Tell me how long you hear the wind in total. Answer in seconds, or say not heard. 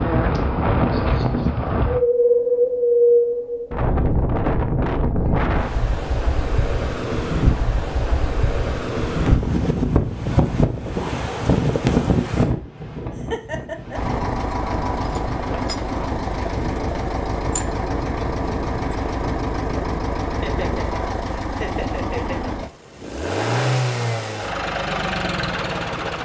21 s.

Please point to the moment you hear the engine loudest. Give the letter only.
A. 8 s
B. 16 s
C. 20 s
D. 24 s
D.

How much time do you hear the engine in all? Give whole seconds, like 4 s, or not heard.
12 s.